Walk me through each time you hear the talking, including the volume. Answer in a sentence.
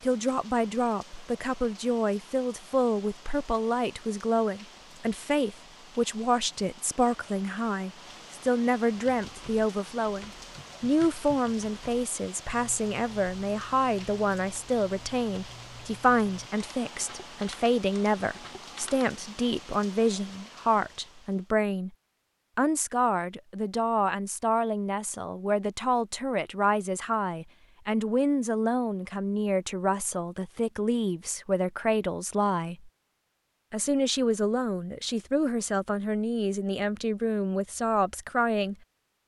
The talking can be heard from 0.0 to 21.9 s, at a steady volume; from 22.6 to 32.9 s, at a steady volume; and from 33.7 to 38.8 s, at a steady volume.